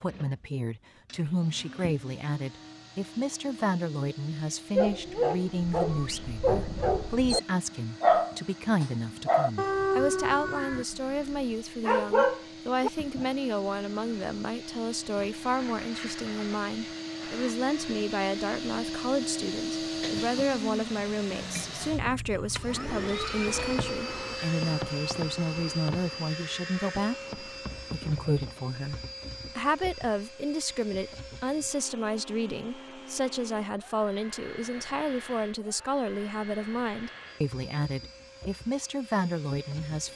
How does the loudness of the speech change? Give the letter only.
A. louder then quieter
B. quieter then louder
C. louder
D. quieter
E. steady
E.